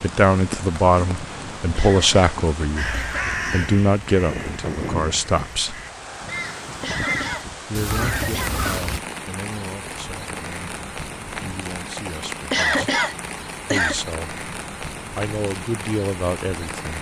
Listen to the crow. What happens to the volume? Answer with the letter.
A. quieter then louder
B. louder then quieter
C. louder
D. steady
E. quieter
A.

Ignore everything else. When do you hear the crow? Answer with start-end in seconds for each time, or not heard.
2.8-9.0.